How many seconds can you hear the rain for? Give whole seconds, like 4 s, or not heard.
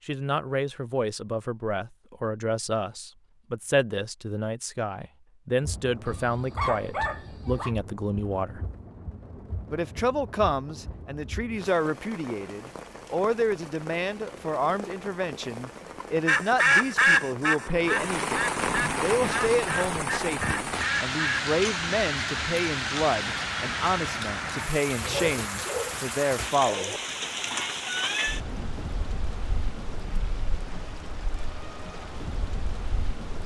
28 s.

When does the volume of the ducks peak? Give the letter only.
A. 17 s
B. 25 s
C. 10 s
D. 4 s
A.